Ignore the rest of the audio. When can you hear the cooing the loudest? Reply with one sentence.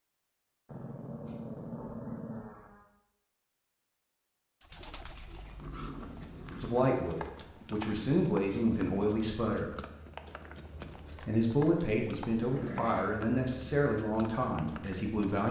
The loudest moment of the cooing is at 5 seconds.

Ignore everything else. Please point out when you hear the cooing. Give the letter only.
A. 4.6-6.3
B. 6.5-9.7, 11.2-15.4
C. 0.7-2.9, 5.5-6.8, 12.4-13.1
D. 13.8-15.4
A.